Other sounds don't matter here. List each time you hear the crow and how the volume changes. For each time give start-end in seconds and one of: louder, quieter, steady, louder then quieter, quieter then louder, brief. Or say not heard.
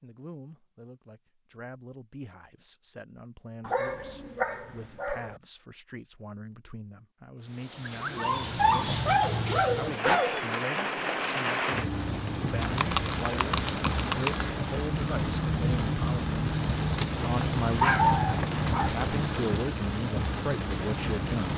not heard.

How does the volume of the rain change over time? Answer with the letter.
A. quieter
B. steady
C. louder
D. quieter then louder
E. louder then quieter
B.